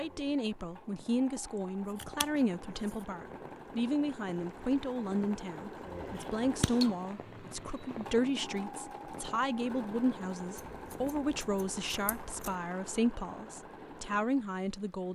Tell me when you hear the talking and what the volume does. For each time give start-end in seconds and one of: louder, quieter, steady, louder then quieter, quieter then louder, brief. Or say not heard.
0.0-15.0 steady.